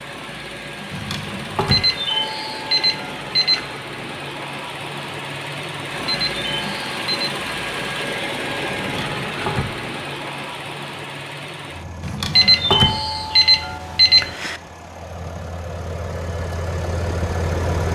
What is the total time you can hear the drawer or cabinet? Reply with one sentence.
The drawer or cabinet can be heard for 3 seconds in total.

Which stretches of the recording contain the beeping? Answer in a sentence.
The beeping can be heard from 1.7 to 3.7 s, from 6.0 to 7.3 s and from 12.3 to 14.6 s.